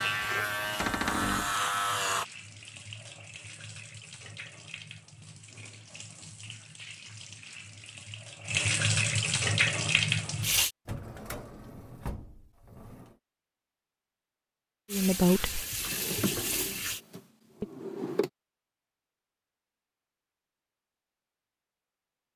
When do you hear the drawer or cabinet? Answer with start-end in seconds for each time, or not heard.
0.8-1.6, 10.8-13.2, 15.8-18.3.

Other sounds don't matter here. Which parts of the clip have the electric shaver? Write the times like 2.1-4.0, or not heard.
0.0-2.2.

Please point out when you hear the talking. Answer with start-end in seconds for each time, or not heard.
14.9-15.7.